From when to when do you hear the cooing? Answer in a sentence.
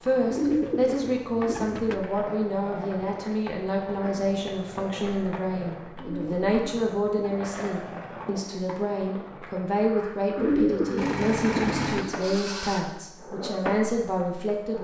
You can hear the cooing from 0.3 to 2.0 s, from 6.0 to 7.8 s and from 10.3 to 12.1 s.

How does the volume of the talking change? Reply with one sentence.
The loudness of the talking stays about the same.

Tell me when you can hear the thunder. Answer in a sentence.
The thunder can't be heard in this clip.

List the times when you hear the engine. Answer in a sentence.
The engine can be heard from 10.9 to 12.8 s.